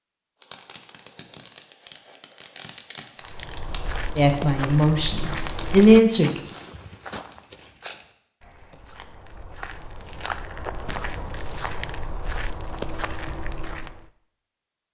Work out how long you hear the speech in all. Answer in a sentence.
The speech can be heard for 2 seconds in total.